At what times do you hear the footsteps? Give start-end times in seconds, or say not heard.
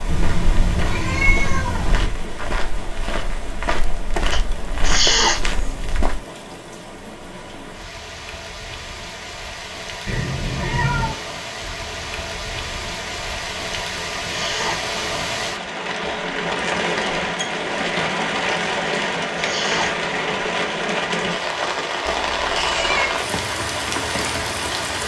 0.1-6.2.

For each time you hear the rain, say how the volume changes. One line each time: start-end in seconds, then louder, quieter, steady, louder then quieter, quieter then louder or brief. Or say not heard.
0.0-25.0 louder.